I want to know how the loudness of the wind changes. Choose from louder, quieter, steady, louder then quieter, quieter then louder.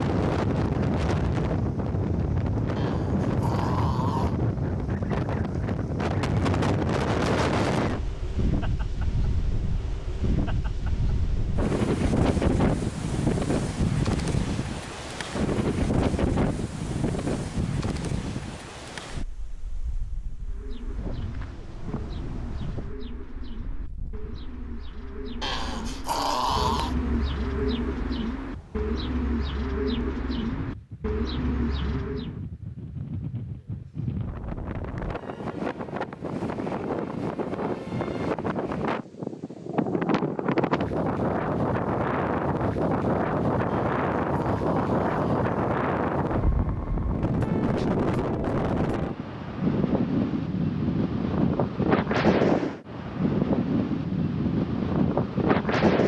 quieter then louder.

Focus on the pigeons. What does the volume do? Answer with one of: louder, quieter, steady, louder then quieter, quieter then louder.
louder.